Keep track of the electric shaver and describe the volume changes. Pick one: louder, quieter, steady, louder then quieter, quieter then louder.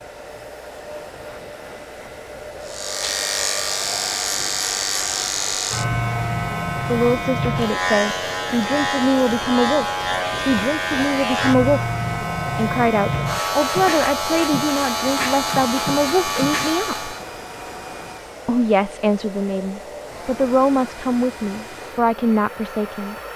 steady.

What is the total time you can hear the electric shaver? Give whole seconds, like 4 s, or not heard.
15 s.